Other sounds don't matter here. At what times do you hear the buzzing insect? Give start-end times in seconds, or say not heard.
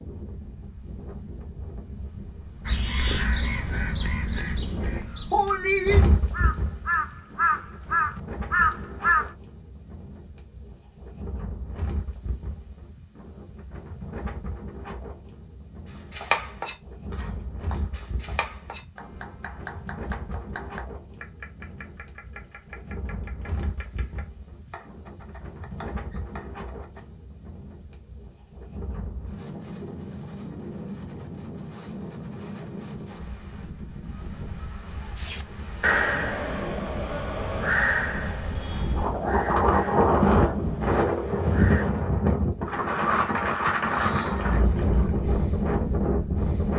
not heard.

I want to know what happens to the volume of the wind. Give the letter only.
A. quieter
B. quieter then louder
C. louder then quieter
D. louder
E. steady
B.